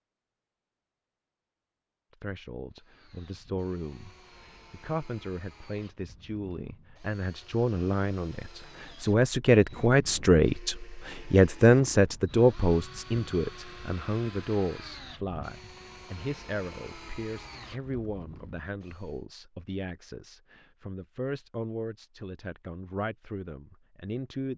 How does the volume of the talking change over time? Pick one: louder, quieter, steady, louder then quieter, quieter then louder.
louder then quieter.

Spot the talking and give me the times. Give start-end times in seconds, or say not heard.
2.1-24.5.